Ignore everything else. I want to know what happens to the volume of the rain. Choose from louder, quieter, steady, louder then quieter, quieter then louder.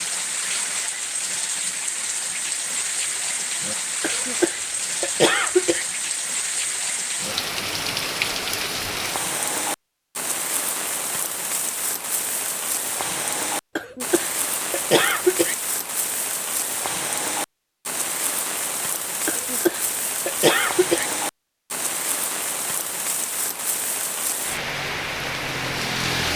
steady.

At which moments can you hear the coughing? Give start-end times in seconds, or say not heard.
4.0-5.8, 13.8-15.6, 19.2-21.1.